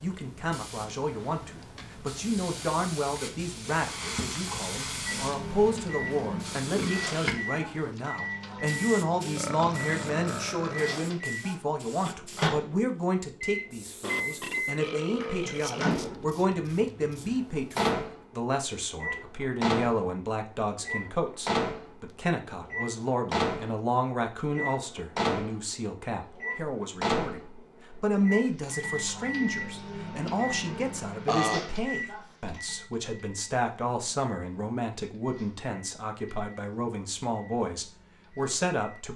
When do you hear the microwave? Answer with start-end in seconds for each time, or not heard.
5.0-39.1.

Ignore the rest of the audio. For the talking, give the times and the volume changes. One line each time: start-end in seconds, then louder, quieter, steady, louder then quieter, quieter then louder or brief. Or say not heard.
0.0-39.1 steady.